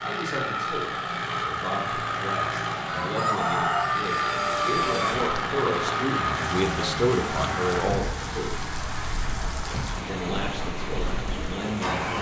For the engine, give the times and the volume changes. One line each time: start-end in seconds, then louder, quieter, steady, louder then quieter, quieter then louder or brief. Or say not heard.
0.0-12.1 quieter.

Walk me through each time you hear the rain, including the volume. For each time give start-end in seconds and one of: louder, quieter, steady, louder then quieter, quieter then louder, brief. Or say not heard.
4.0-12.1 steady.